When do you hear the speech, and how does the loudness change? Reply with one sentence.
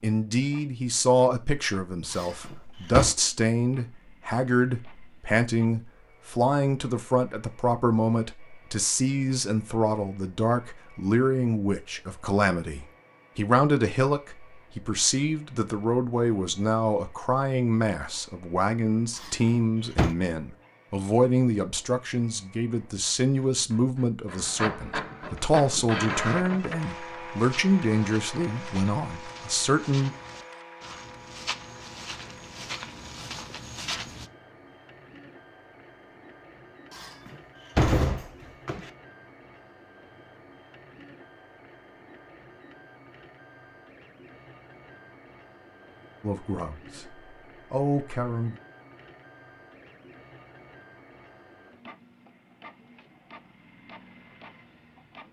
You can hear the speech from 0.0 to 30.1 s, at a steady volume; and briefly from 46.2 to 48.5 s.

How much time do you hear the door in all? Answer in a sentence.
The door can be heard for 4 seconds in total.